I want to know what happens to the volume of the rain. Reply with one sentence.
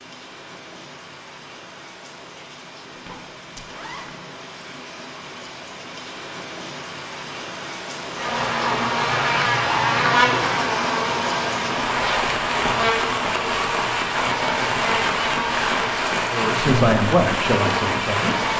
The volume of the rain goes up.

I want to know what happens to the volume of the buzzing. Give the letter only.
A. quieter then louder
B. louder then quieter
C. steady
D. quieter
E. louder
D.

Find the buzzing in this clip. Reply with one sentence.
The buzzing can be heard from 8.2 to 18.5 s.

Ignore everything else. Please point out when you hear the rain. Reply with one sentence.
The rain can be heard from 0.0 to 18.5 s.